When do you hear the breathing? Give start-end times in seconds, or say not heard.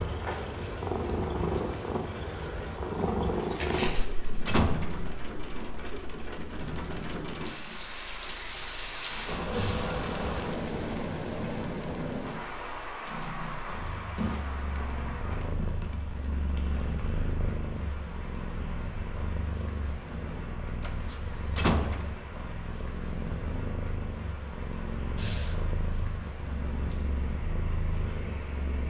9.5-9.9, 25.1-25.6.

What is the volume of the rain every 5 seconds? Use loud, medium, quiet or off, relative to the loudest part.
medium, loud, loud, medium, medium, medium.